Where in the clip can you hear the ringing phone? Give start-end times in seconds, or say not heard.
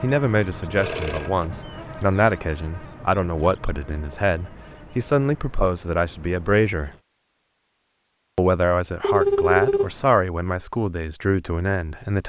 0.8-1.4, 9.0-10.1.